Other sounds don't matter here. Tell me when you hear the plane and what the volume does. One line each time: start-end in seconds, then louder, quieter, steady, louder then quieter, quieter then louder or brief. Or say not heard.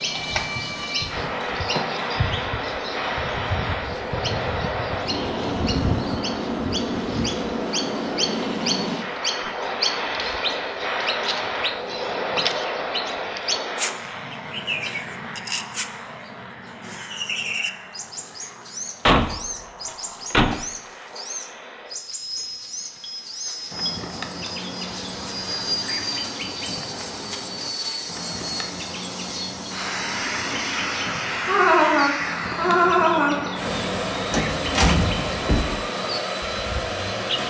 0.0-37.4 quieter then louder.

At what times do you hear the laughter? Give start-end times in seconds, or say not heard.
31.4-33.5.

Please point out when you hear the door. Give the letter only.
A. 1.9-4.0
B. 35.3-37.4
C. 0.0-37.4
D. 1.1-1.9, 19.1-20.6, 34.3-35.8
D.